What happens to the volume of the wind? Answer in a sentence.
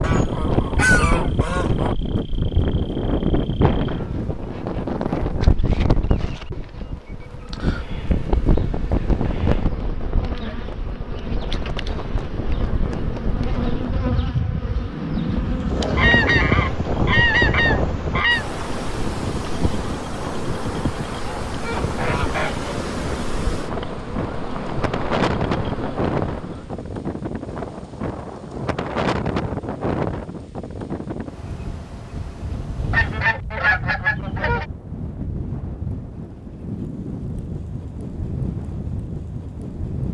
The loudness of the wind goes down.